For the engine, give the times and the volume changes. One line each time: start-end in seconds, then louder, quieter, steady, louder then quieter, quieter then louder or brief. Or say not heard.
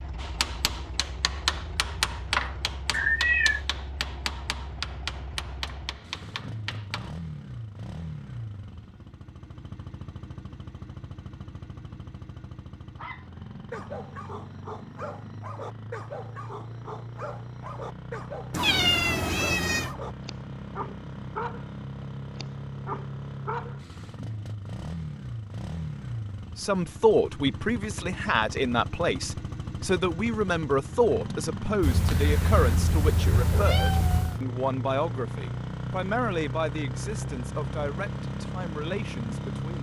0.0-39.7 louder.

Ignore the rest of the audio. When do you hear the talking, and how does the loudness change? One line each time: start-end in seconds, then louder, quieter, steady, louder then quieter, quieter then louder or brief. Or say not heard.
26.6-39.7 quieter.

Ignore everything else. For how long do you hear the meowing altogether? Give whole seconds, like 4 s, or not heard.
5 s.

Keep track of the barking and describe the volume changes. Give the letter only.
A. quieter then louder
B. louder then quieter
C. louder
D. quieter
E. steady
E.